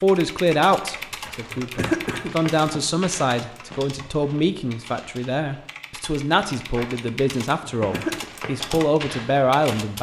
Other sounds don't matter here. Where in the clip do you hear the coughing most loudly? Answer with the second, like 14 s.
2 s.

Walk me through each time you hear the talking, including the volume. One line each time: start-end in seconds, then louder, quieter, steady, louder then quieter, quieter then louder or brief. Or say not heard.
0.0-9.9 steady.